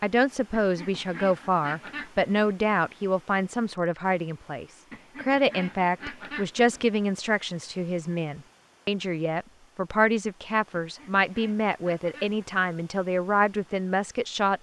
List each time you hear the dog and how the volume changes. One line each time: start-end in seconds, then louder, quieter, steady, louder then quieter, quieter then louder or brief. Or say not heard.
not heard.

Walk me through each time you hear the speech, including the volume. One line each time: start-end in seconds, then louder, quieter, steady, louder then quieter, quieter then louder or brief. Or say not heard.
0.0-14.5 steady.